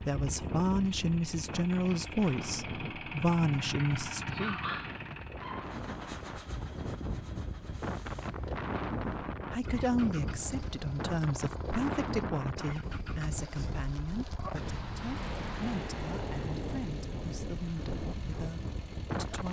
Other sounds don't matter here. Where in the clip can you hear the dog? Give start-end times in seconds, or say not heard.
4.3-5.8.